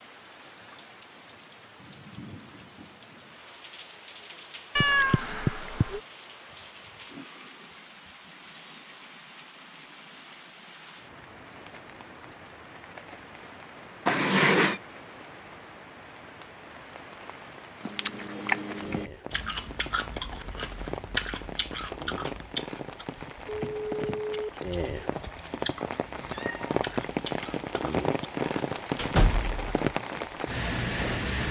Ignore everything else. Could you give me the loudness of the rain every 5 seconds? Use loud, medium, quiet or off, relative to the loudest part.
quiet, quiet, quiet, quiet, medium, loud, loud.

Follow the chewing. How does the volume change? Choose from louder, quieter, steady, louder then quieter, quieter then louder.
quieter.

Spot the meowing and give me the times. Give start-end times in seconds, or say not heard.
4.8-6.0, 14.1-14.8, 26.1-26.7.